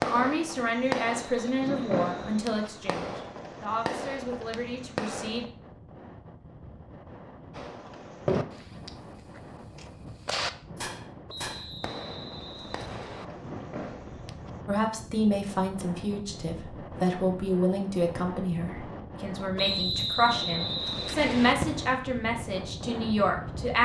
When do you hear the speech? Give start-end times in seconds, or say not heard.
0.0-5.5, 14.7-23.8.